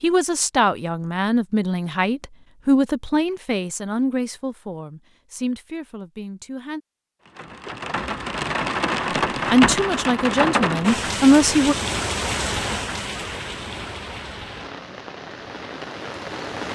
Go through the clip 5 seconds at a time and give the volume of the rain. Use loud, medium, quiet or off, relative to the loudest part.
off, loud, loud, medium.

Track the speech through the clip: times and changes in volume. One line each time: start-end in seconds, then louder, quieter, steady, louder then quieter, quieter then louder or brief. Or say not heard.
0.0-6.8 quieter
9.5-11.8 brief.